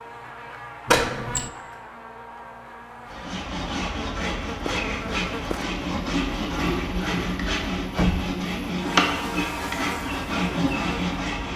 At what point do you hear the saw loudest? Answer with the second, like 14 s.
9 s.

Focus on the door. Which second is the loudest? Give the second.
1 s.